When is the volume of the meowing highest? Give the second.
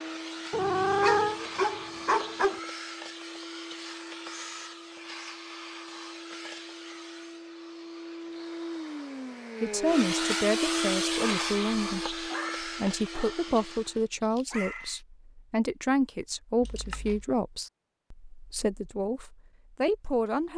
1 s.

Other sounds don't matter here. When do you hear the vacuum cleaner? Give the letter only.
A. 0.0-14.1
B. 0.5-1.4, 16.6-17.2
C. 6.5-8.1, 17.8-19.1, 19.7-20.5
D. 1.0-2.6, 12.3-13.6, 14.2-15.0
A.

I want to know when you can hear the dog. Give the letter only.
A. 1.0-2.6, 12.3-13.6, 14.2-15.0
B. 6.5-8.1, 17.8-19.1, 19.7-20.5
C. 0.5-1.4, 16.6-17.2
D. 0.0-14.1
A.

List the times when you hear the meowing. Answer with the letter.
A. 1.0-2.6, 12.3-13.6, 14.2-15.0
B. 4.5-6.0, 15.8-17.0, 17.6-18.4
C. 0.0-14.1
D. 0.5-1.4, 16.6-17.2
D.